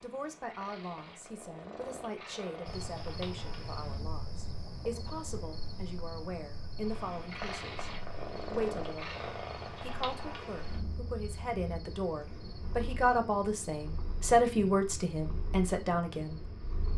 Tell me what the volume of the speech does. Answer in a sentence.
The loudness of the speech goes up.